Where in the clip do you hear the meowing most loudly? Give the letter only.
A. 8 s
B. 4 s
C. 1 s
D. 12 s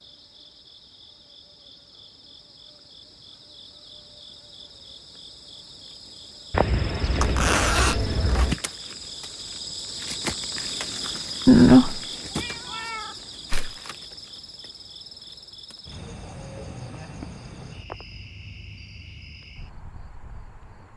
D.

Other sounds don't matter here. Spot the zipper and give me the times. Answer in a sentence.
You can hear the zipper from 7.2 to 8.6 s.